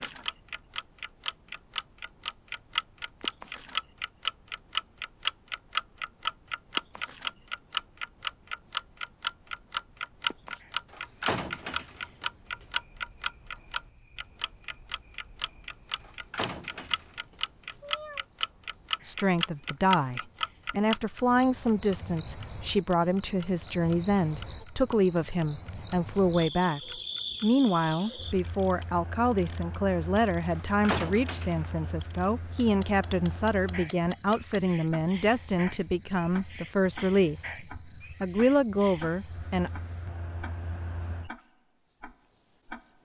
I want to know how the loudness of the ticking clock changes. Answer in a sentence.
The loudness of the ticking clock goes down.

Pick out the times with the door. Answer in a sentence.
The door can be heard from 10.9 to 12.7 s, from 16.0 to 17.4 s and from 30.6 to 31.6 s.